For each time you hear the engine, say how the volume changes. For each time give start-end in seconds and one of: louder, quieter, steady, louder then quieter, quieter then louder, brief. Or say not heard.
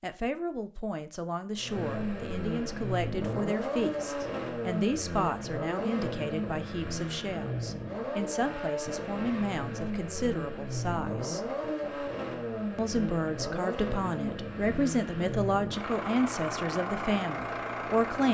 1.6-18.2 steady.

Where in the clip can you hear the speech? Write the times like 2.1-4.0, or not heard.
0.0-11.4, 12.8-18.2.